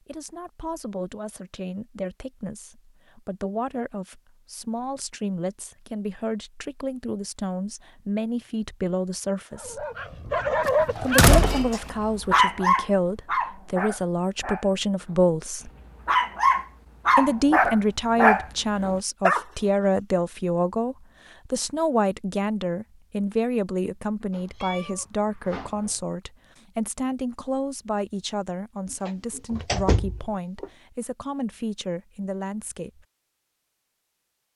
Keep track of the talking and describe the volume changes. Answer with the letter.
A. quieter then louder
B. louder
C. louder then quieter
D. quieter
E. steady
C.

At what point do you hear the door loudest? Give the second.
11 s.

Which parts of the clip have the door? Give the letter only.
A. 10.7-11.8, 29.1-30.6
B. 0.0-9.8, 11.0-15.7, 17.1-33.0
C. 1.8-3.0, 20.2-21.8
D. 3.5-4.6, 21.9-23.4
A.